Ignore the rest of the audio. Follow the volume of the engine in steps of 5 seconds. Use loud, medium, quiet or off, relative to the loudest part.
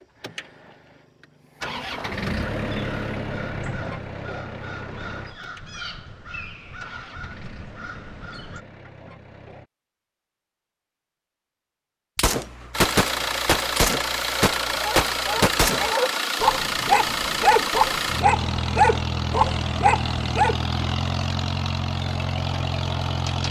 medium, quiet, loud, loud, loud.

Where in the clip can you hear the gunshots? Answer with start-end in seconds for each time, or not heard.
12.2-15.9.